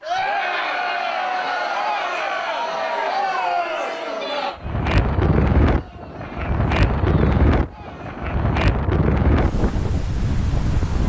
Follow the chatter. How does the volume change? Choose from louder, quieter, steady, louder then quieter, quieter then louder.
quieter.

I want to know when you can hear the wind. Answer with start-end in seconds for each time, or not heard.
4.5-11.0.